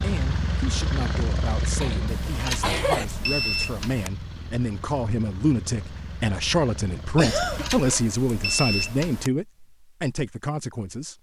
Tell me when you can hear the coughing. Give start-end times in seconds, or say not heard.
1.8-3.0, 7.2-8.0.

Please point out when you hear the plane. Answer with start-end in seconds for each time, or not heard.
0.0-7.8.